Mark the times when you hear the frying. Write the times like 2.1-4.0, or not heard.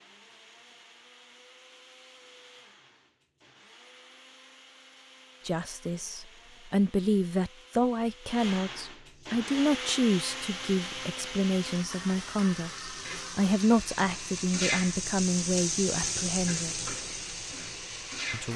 9.1-18.5.